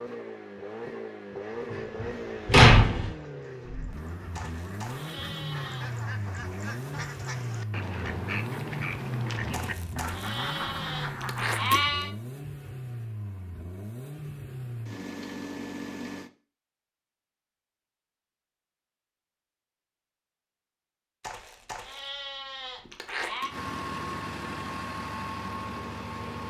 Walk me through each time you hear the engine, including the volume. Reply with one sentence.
The engine can be heard from 0.0 to 16.3 s, at a steady volume; and briefly from 23.4 to 26.4 s.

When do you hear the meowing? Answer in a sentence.
The meowing can't be heard in this clip.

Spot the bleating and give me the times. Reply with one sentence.
You can hear the bleating from 4.3 to 5.9 s, from 9.5 to 12.1 s and from 21.2 to 23.6 s.